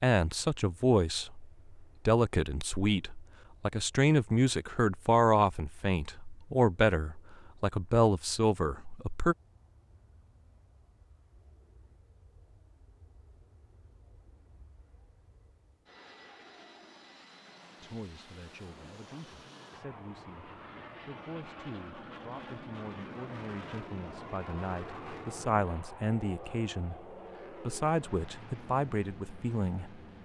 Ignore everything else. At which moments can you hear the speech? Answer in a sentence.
You can hear the speech from 0.0 to 9.3 s and from 17.8 to 30.0 s.